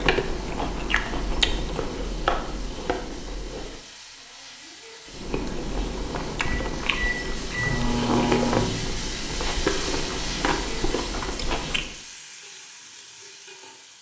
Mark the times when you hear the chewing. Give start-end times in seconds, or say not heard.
0.0-3.8, 5.0-12.0.